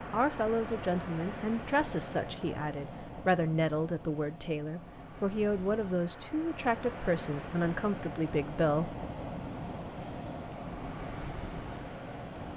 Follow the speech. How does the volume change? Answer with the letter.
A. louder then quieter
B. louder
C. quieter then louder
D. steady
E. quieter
D.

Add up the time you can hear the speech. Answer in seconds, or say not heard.
9 s.